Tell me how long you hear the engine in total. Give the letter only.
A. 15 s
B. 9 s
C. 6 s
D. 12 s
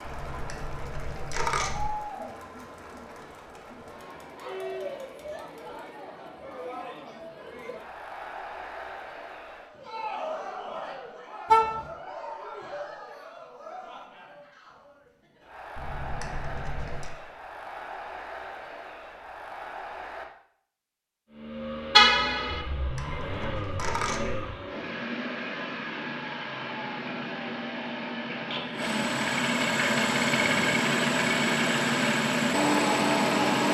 D.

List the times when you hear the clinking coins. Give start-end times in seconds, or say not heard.
0.1-1.9, 15.8-17.1, 22.5-24.4.